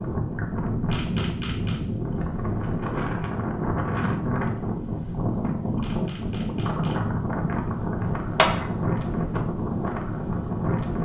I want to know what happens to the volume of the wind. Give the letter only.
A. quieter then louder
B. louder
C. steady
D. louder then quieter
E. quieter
C.